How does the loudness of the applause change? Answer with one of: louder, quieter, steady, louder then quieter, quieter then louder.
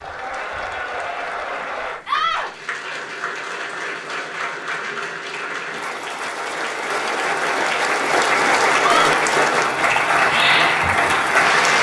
louder.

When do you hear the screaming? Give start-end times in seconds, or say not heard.
2.0-2.5, 8.8-9.2.